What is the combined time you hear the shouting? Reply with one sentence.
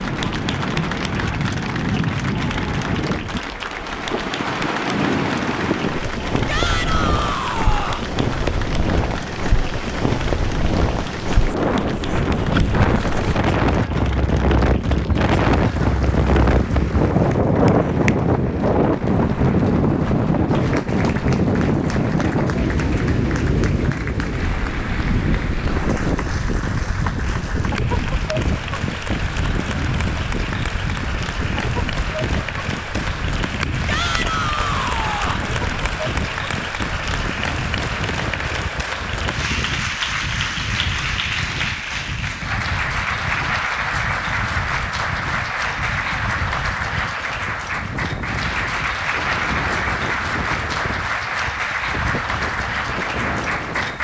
The shouting can be heard for 3 seconds in total.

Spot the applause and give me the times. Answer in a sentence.
You can hear the applause from 0.0 to 53.9 s.